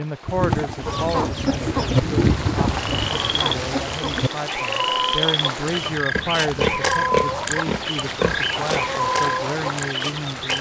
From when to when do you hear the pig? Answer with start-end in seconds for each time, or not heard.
0.2-3.2, 6.2-8.8.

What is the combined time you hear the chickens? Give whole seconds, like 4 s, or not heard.
10 s.